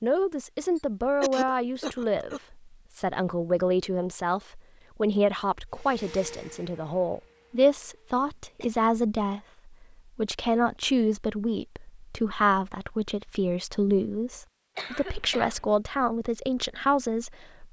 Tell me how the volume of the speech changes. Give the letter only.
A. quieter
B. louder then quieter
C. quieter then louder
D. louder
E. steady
E.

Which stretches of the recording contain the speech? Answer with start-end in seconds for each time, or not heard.
0.0-17.6.